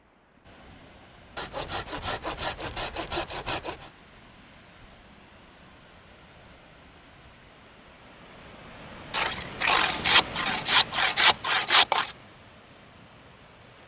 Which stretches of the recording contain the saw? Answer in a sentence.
You can hear the saw from 1.4 to 3.9 s and from 9.1 to 12.2 s.